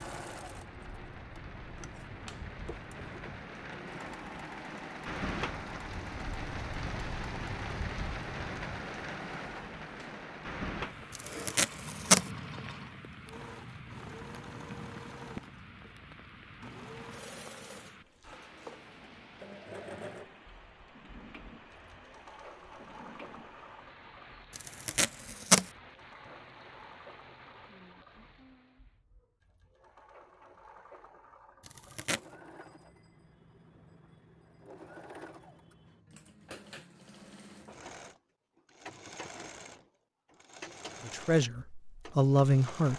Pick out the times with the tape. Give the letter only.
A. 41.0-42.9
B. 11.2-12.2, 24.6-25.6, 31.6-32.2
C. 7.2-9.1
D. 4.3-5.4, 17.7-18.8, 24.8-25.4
B.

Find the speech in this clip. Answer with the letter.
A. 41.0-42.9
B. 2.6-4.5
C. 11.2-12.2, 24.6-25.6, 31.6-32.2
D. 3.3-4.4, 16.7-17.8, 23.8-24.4
A.